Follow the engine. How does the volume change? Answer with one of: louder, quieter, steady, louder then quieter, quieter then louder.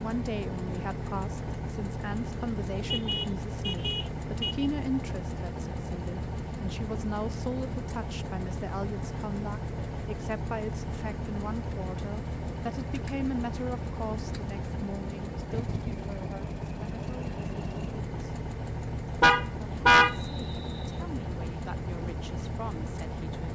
steady.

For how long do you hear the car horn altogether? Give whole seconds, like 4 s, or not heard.
3 s.